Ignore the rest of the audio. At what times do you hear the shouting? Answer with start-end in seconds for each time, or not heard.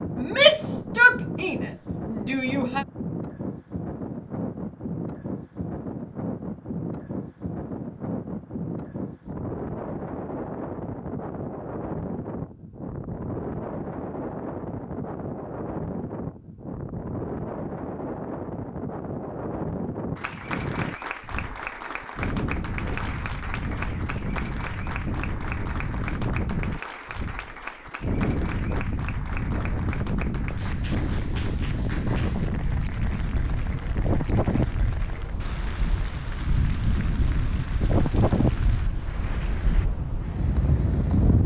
0.1-2.9.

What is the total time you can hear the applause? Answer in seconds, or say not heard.
20 s.